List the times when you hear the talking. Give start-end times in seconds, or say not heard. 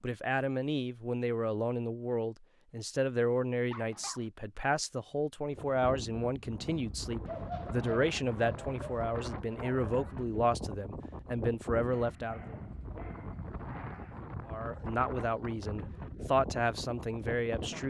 0.0-12.6, 14.4-17.8.